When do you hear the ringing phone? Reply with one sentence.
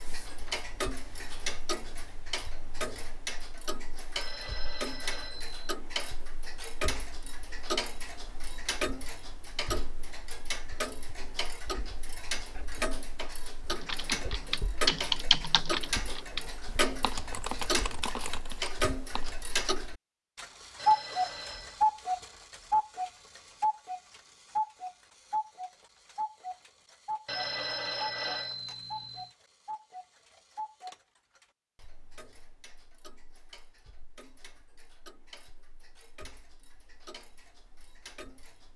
The ringing phone can be heard from 4.2 to 5.8 s, from 20.8 to 21.8 s and from 27.2 to 29.3 s.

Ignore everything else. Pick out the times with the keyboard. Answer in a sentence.
The keyboard can be heard from 13.7 to 19.4 s.